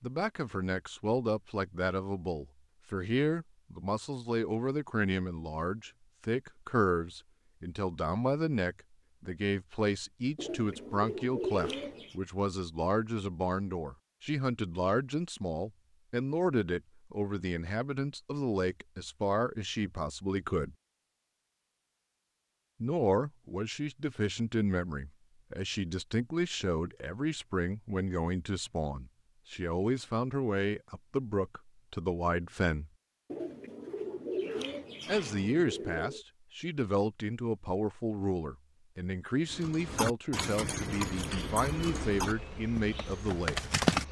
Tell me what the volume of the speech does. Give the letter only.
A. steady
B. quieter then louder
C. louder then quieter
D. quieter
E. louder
A.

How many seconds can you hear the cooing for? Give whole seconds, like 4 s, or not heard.
5 s.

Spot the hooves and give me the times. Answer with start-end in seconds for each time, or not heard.
39.5-44.0.